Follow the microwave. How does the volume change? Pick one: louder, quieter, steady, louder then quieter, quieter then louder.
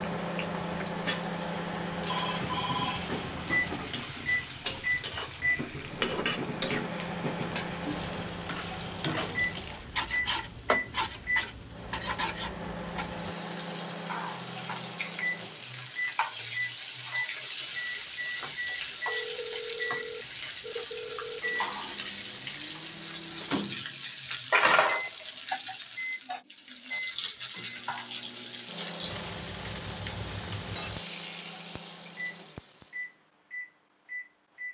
quieter.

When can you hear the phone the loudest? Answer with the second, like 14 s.
3 s.